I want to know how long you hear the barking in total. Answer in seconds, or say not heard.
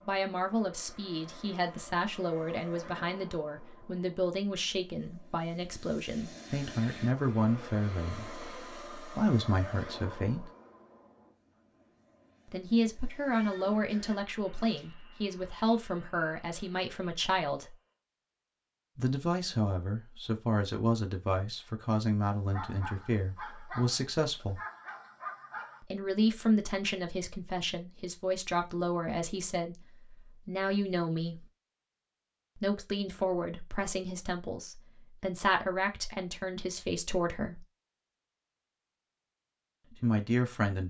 3 s.